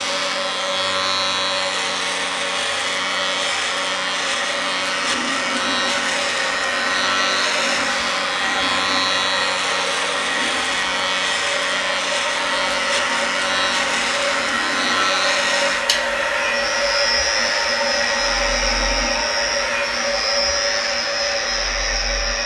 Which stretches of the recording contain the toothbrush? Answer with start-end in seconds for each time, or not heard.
not heard.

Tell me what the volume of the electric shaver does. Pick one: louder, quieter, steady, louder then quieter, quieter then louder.
steady.